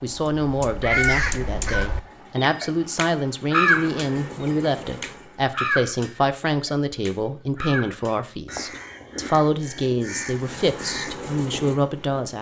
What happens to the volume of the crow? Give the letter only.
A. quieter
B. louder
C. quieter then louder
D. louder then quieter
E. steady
A.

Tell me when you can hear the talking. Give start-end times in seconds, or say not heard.
0.0-12.3.